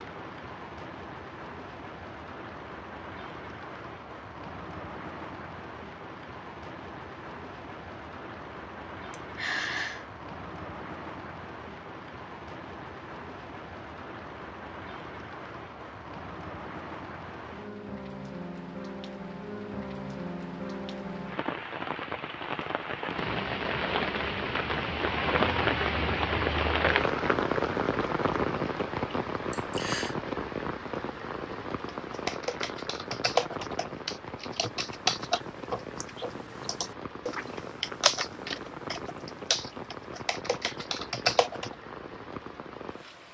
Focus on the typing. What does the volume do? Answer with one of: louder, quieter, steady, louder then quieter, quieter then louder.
quieter then louder.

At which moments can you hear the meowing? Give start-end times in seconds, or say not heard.
not heard.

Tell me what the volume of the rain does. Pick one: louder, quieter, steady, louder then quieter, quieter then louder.
louder then quieter.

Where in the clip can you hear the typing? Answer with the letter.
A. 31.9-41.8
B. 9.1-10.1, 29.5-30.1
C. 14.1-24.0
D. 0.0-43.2
A.